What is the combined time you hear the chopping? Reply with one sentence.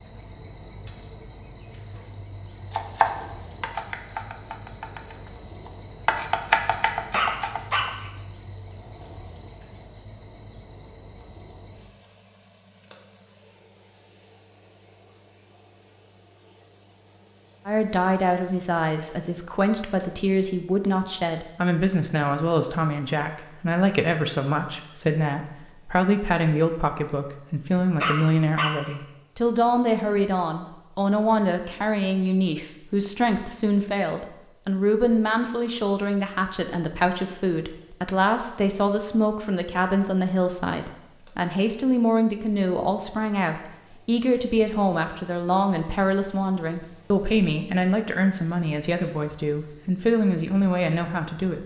You can hear the chopping for 5 seconds altogether.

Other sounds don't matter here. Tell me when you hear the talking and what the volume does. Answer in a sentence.
The talking can be heard from 17.6 to 51.6 s, at a steady volume.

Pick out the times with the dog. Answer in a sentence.
The dog can be heard from 7.1 to 8.1 s and from 28.0 to 28.9 s.